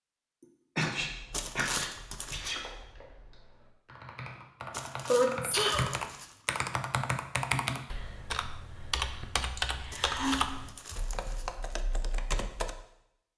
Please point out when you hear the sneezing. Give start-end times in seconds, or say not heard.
0.8-2.6, 5.0-5.9, 9.6-10.3.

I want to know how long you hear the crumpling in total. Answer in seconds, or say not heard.
5 s.